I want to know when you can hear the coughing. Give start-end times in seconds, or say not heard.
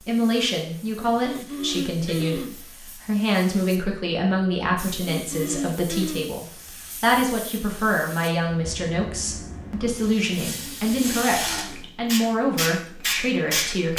0.9-2.5, 4.8-6.3, 10.6-11.8.